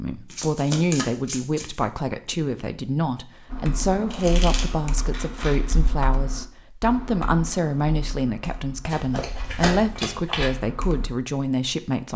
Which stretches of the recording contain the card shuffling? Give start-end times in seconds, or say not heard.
0.3-1.9, 4.1-5.7, 8.8-10.5.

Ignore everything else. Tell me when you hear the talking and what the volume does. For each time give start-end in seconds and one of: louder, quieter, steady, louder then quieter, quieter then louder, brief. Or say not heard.
0.0-12.1 steady.